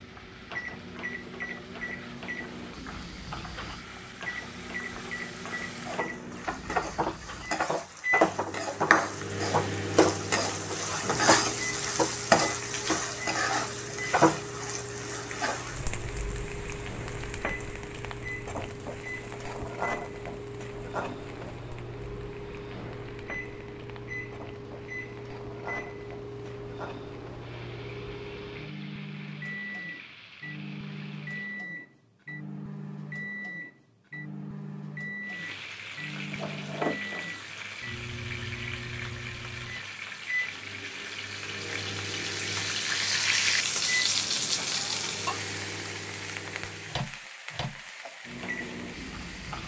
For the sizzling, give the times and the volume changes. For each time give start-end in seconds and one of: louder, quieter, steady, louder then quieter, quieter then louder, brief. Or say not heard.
0.0-31.6 louder then quieter
35.2-49.6 louder then quieter.